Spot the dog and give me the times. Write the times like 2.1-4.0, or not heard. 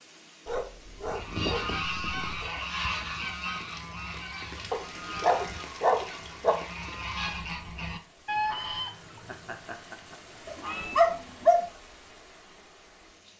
0.5-2.5, 4.7-6.5, 10.4-11.6.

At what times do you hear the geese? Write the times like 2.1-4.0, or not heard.
1.0-11.0.